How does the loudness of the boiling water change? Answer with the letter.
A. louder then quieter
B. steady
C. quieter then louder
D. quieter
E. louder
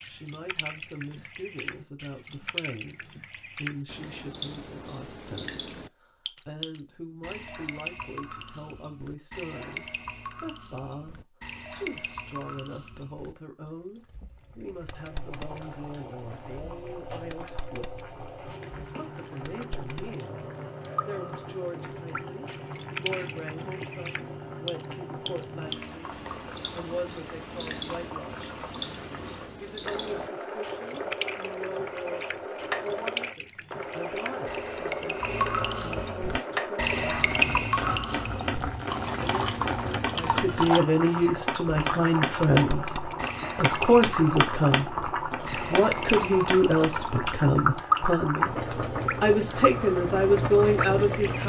E.